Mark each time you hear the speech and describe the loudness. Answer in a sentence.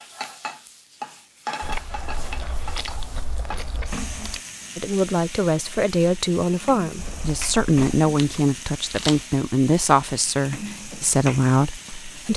You can hear the speech from 4.8 to 12.3 s, at a steady volume.